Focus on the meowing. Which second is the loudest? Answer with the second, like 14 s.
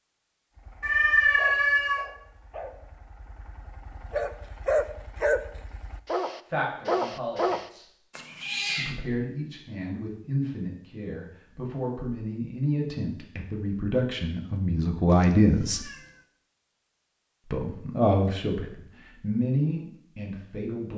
1 s.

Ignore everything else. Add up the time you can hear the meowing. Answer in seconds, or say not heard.
3 s.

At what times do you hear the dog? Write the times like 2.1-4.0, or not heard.
0.6-7.7.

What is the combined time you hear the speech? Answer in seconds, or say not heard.
12 s.